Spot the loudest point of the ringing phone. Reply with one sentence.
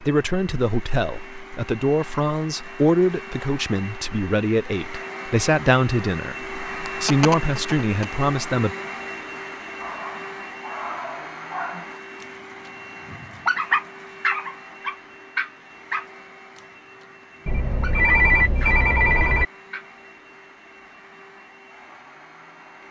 The volume of the ringing phone peaks at 18 seconds.